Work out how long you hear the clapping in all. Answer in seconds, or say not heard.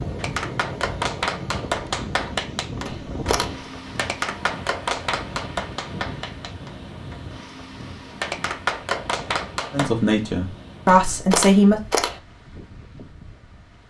10 s.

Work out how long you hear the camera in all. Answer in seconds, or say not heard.
2 s.